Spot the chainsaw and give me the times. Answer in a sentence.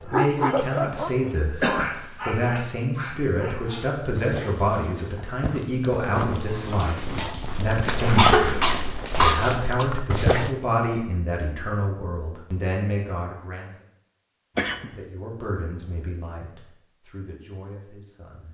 You can't hear the chainsaw here.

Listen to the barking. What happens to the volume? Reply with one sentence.
The volume of the barking goes down, then up.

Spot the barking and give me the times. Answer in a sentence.
The barking can be heard from 0.0 to 10.6 s.